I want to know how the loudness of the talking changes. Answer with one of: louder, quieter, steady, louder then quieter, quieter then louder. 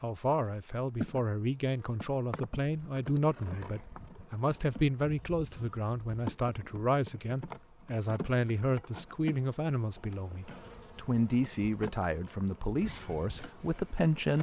steady.